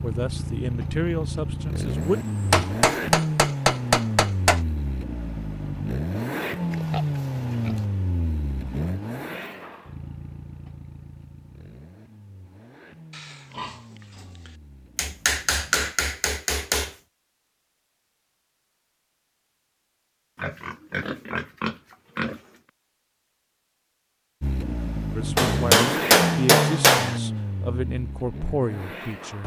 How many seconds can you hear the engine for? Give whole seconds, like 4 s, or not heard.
21 s.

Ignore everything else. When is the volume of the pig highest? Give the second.
22 s.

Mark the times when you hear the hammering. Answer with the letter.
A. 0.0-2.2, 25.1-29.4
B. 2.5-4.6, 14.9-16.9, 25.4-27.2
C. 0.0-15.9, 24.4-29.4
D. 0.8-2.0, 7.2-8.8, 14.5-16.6
B.